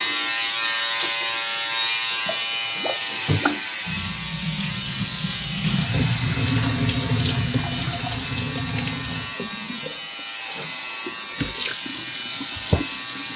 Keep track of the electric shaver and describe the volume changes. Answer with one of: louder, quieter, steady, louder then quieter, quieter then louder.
quieter.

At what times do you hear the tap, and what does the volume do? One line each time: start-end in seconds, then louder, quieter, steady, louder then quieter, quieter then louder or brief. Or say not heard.
0.0-13.3 louder then quieter.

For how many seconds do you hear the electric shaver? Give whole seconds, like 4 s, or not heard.
13 s.